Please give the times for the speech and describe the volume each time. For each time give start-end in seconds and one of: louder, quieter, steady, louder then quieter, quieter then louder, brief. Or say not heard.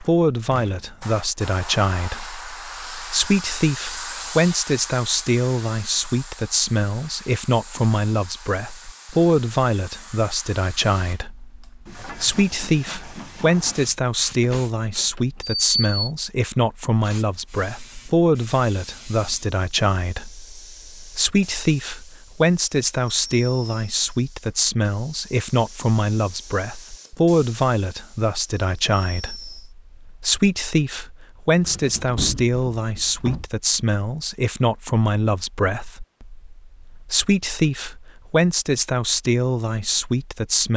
0.0-40.7 steady.